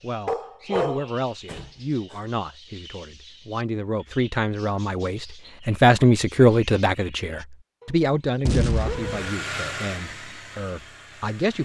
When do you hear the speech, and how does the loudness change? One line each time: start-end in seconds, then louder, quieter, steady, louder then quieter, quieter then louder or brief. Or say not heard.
0.0-11.5 louder then quieter.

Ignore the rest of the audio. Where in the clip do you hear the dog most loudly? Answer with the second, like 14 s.
1 s.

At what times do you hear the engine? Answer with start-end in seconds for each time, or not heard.
8.8-11.5.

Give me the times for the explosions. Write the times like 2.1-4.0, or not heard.
8.4-9.3.